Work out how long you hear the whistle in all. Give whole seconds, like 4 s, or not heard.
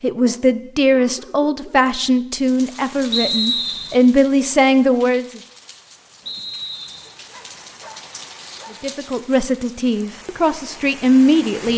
2 s.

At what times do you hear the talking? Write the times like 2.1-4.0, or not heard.
0.0-5.4, 8.8-11.7.